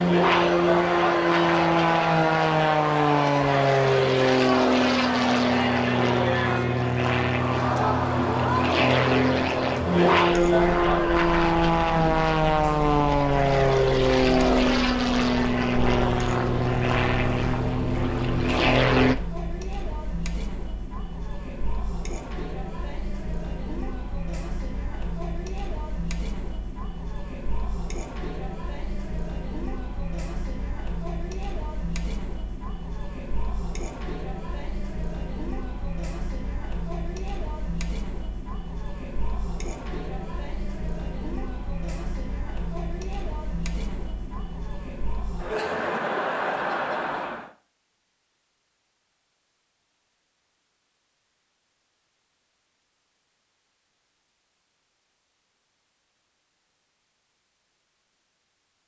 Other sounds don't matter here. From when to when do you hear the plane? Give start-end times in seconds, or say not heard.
0.0-19.1.